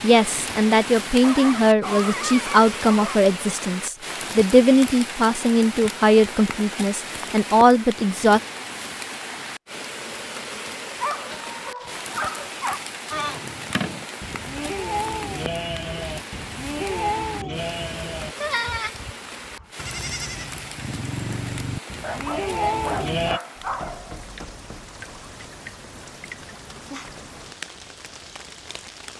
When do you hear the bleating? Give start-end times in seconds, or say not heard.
13.1-23.4.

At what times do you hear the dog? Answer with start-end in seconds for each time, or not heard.
1.2-3.2, 10.9-12.9, 22.0-24.4.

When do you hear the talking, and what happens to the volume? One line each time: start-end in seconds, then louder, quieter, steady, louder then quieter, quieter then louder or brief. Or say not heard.
0.0-8.4 steady.